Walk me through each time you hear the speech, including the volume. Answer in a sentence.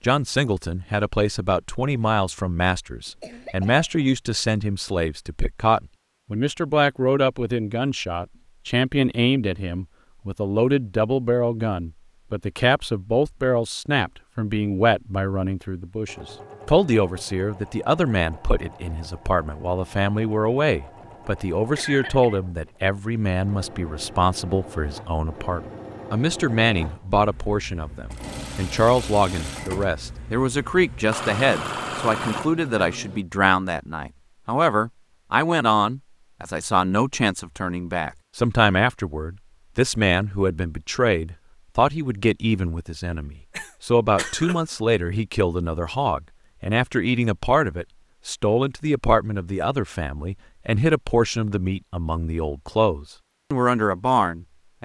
You can hear the speech from 0.0 to 54.8 s, at a steady volume.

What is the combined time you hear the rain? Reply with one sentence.
The rain can't be heard in this clip.